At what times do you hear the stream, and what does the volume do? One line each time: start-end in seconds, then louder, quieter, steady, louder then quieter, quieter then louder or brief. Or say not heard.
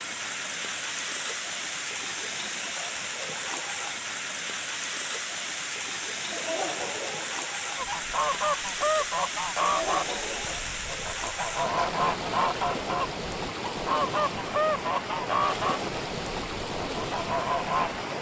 0.0-18.1 steady.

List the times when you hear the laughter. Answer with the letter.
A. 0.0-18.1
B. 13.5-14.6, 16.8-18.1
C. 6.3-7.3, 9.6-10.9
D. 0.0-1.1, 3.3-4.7
C.